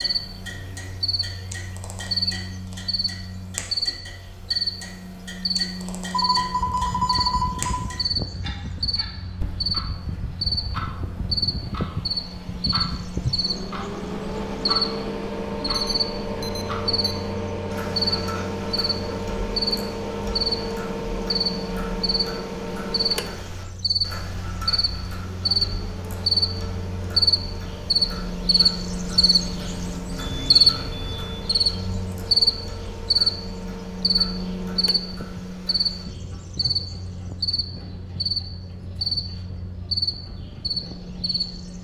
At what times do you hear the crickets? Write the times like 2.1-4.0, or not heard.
0.0-41.7.